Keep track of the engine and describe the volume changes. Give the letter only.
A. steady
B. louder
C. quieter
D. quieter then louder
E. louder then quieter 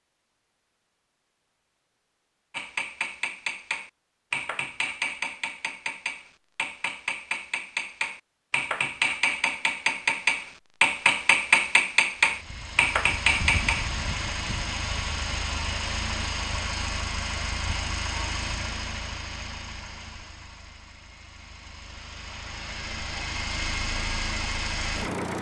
D.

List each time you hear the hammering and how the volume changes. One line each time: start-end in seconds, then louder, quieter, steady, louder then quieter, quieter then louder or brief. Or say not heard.
2.5-13.9 louder.